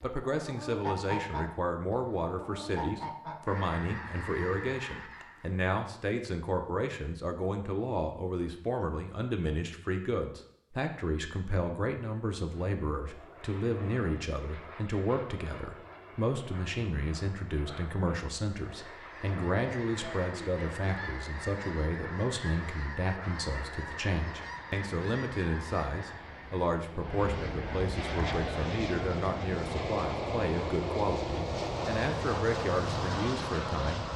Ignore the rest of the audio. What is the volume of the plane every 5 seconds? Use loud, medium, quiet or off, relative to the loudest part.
off, off, quiet, quiet, quiet, loud, loud.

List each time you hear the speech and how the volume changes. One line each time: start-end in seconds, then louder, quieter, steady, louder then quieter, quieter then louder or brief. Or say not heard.
0.0-34.0 steady.